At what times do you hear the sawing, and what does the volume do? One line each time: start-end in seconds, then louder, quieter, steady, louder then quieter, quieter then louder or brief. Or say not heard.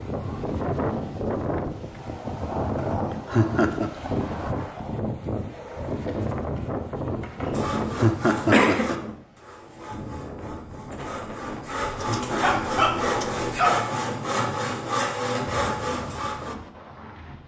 7.5-16.6 quieter then louder.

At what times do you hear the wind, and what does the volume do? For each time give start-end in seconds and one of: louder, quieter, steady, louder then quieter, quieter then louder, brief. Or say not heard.
0.0-17.4 quieter.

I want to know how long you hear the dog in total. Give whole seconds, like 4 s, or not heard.
2 s.